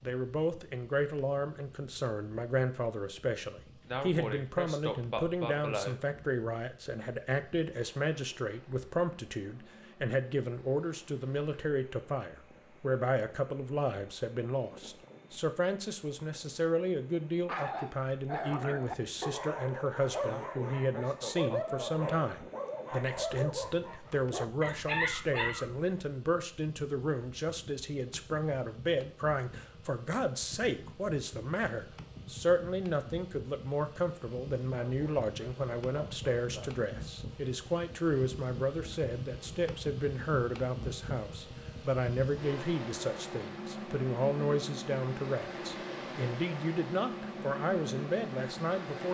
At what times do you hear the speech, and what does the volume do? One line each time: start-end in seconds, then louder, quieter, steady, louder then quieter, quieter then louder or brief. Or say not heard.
0.0-49.0 steady.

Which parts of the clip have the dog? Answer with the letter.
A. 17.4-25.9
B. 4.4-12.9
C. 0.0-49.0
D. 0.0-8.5
A.